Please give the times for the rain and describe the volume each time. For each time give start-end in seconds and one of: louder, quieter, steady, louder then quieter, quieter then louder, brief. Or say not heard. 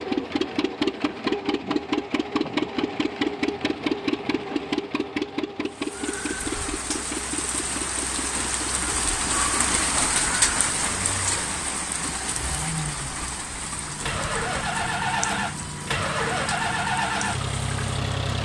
5.7-18.4 louder then quieter.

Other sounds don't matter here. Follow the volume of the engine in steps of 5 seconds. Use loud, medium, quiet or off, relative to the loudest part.
loud, medium, medium, loud.